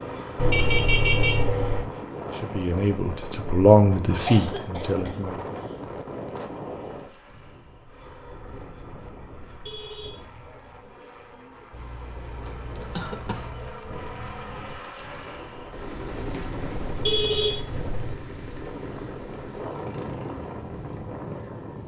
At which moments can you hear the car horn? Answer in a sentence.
The car horn can be heard from 0.3 to 1.9 s, from 9.4 to 10.2 s and from 16.9 to 18.1 s.